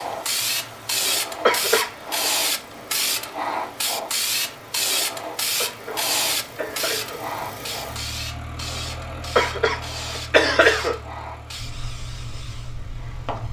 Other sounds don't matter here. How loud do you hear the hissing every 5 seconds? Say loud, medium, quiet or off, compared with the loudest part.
loud, loud, medium.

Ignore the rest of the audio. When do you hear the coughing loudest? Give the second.
11 s.